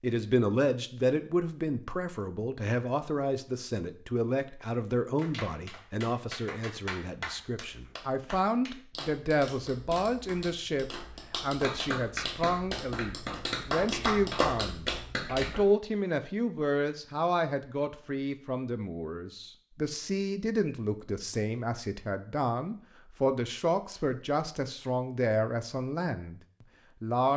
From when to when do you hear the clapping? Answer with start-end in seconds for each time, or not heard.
5.2-15.7.